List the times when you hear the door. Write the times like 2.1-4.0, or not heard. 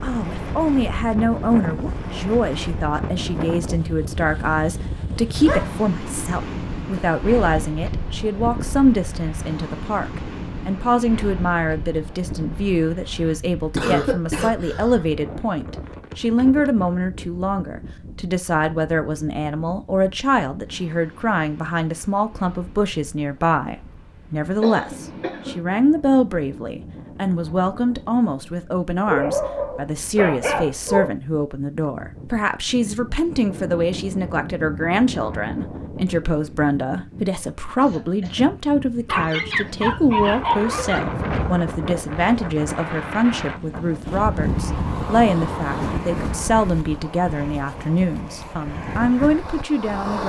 not heard.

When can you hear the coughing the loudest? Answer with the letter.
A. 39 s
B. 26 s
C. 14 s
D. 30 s
C.